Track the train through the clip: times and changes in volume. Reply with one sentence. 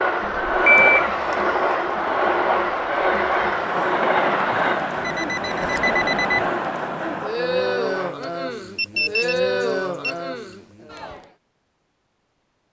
You can hear the train from 0.0 to 8.2 s, getting quieter.